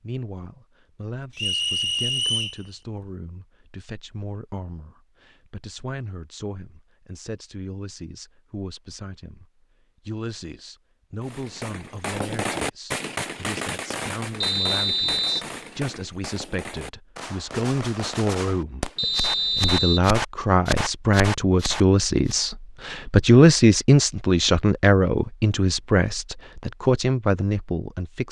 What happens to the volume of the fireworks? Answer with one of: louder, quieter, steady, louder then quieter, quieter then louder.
quieter then louder.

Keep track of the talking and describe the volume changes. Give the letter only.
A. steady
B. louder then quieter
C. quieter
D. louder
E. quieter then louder
D.